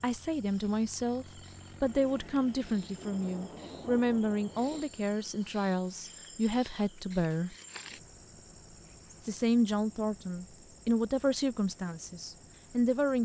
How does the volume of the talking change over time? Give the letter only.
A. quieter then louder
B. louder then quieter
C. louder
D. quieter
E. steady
E.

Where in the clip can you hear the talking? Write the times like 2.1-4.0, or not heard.
0.0-7.5, 9.2-13.2.